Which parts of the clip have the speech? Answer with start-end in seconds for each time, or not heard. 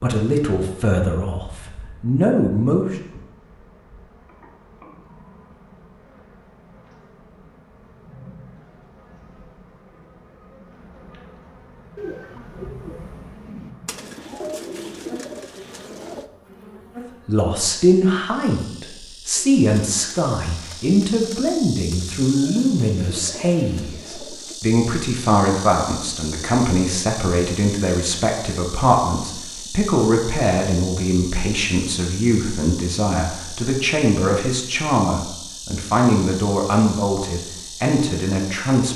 0.0-3.0, 17.2-38.9.